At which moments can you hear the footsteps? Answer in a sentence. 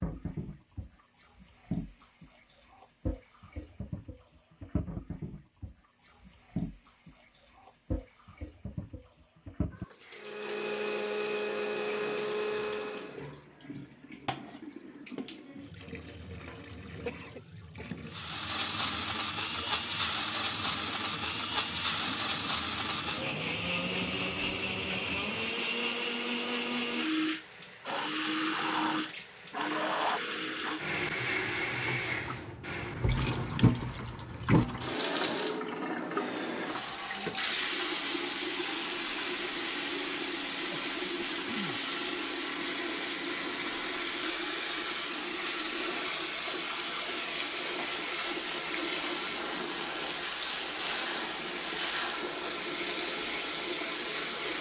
You can't hear the footsteps here.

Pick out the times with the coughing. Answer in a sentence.
The coughing can be heard from 17.1 to 17.9 s and from 40.6 to 41.8 s.